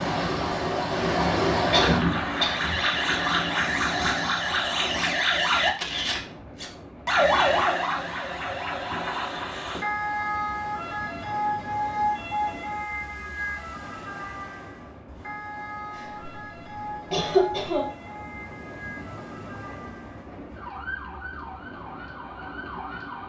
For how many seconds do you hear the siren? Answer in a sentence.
The siren can be heard for 23 seconds in total.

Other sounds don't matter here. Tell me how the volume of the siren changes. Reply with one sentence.
The loudness of the siren goes down.